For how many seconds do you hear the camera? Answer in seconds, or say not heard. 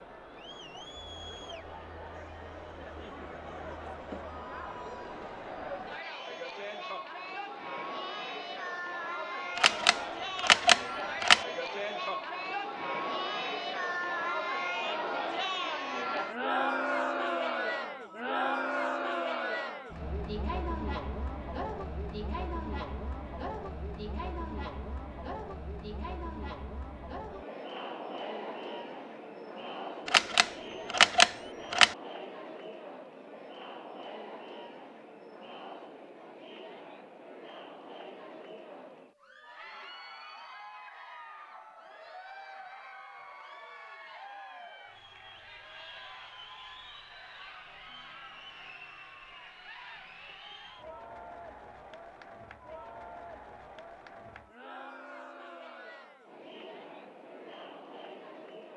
4 s.